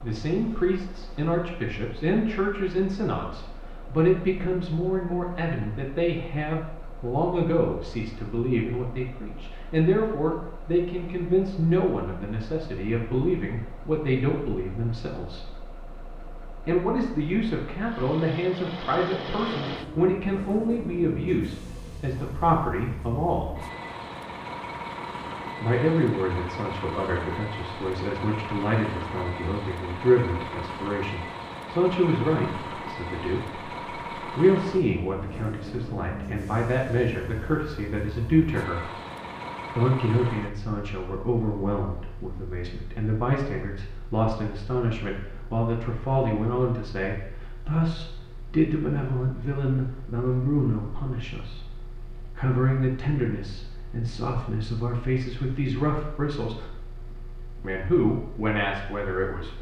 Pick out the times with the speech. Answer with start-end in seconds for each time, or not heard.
0.0-15.6, 16.6-23.6, 25.6-38.9, 39.8-56.8, 57.6-59.5.